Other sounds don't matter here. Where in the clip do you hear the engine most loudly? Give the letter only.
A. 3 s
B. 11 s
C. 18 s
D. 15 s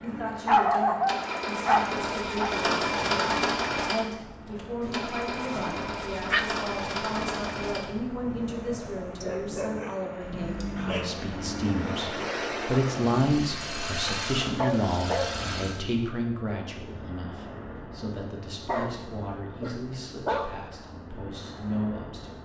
A.